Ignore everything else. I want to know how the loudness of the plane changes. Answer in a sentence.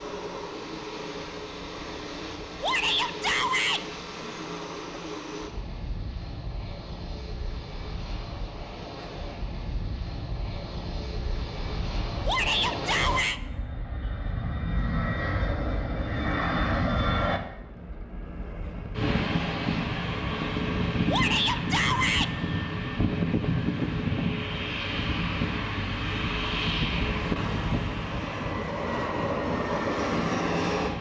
The loudness of the plane goes up.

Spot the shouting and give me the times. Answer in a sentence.
You can hear the shouting from 2.6 to 3.8 s, from 12.2 to 13.4 s and from 21.1 to 22.3 s.